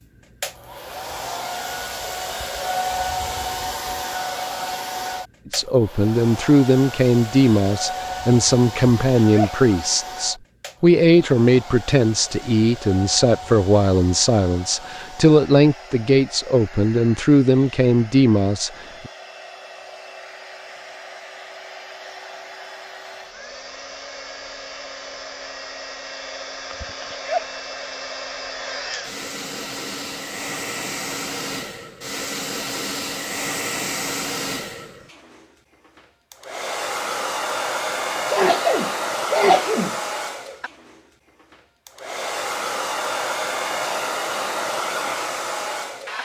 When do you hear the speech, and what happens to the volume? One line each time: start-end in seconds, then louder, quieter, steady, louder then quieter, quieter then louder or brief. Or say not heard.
5.5-19.1 steady.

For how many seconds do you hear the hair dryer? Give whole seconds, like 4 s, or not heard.
46 s.